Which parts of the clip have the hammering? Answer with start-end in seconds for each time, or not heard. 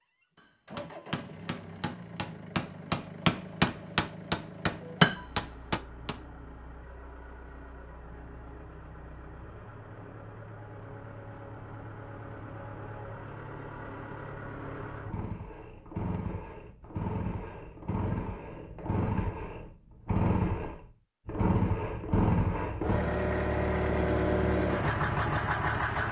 0.3-6.2.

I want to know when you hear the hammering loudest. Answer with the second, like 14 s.
5 s.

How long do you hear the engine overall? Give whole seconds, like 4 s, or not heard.
26 s.